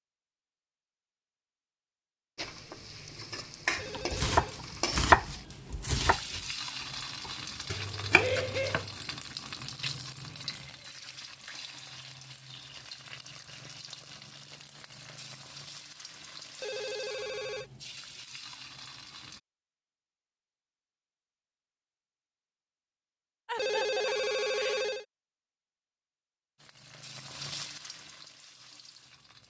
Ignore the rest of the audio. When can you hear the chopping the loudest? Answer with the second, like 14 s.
5 s.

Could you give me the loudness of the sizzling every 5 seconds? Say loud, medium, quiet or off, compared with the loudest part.
loud, loud, medium, medium, off, medium.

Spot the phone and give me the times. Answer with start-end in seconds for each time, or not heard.
3.8-4.7, 16.6-17.7, 23.6-25.1.